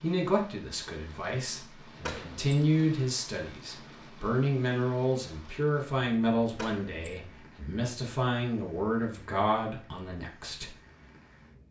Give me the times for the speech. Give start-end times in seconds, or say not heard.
0.0-10.8.